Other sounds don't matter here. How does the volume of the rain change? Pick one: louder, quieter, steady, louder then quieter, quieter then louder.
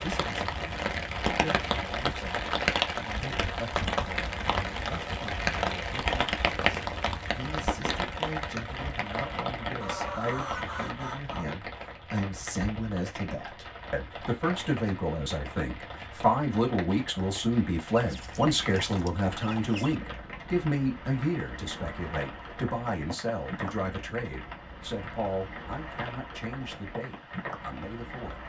quieter.